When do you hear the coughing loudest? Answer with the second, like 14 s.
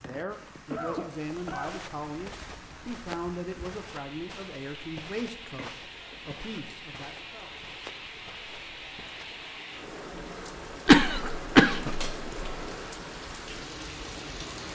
11 s.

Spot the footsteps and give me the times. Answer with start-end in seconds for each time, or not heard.
1.1-9.6.